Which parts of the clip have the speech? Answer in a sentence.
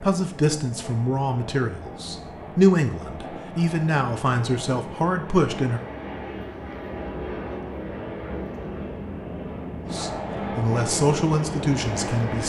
You can hear the speech from 0.0 to 5.8 s and from 9.9 to 12.4 s.